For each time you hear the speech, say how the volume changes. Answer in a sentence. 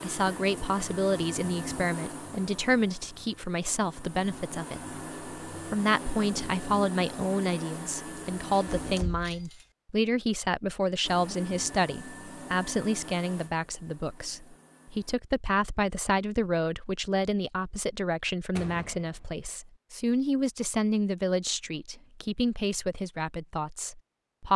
The speech can be heard from 0.0 to 24.5 s, at a steady volume.